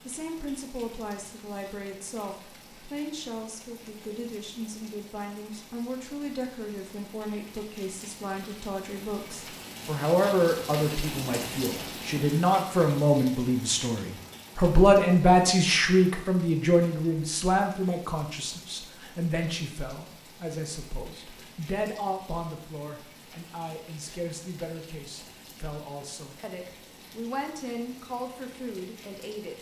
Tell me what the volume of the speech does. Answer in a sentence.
The volume of the speech goes up, then down.